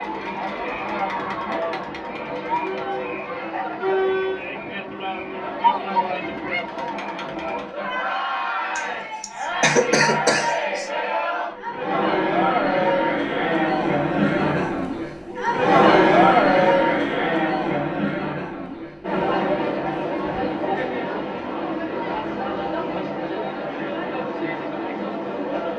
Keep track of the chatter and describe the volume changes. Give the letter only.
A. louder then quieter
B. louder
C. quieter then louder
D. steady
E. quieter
A.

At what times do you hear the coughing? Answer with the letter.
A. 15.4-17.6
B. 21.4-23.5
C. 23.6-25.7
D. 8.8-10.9
D.